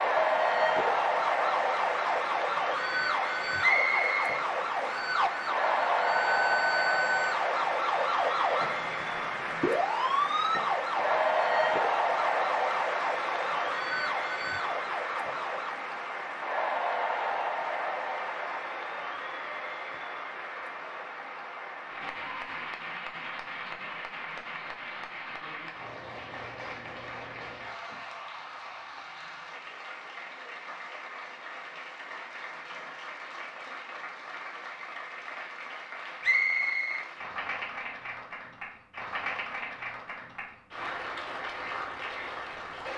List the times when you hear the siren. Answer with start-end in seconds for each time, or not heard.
0.0-15.8.